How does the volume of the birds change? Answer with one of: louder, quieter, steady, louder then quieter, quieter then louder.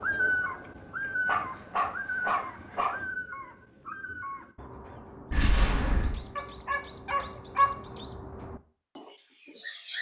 quieter.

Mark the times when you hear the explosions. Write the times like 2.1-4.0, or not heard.
5.3-6.2.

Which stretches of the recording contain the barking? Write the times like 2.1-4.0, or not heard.
1.2-3.0, 6.3-7.8.